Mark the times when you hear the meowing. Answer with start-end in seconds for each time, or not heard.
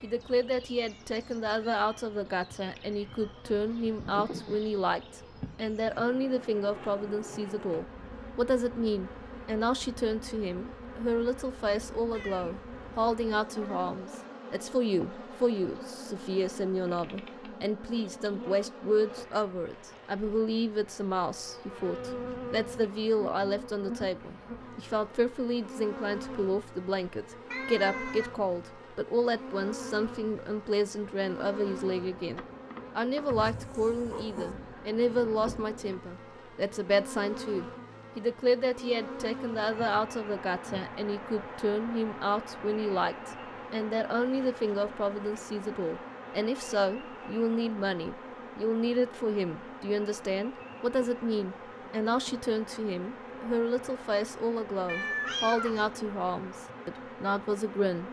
12.1-13.0, 27.5-28.3, 54.9-55.9.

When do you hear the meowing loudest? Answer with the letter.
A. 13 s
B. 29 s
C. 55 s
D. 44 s
C.